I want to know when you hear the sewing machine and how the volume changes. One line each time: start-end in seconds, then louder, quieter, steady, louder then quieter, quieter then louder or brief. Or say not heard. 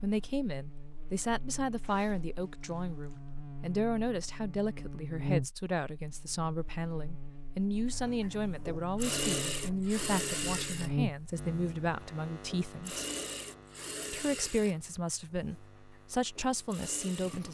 7.9-17.4 quieter.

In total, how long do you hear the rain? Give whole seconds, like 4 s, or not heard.
not heard.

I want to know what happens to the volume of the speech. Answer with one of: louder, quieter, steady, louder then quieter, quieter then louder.
steady.